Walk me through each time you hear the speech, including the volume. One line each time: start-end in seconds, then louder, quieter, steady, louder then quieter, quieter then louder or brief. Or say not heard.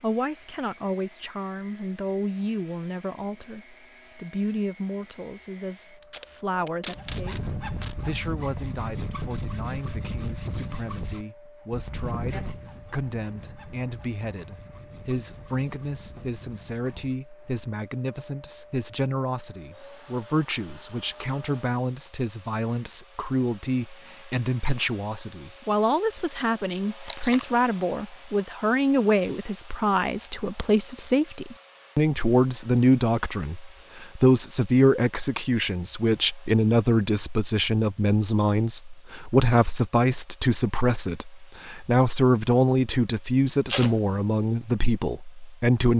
0.0-45.9 louder.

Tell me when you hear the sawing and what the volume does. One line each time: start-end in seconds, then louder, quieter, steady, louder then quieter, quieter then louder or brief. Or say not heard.
6.9-17.2 quieter.